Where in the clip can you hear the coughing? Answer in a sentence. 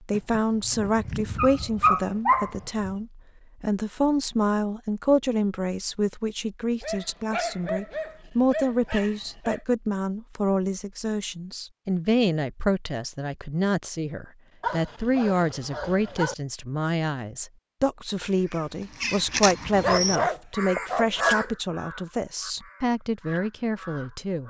The coughing can't be heard in this clip.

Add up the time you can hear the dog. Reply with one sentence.
You can hear the dog for 9 seconds altogether.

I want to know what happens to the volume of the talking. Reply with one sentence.
The loudness of the talking stays about the same.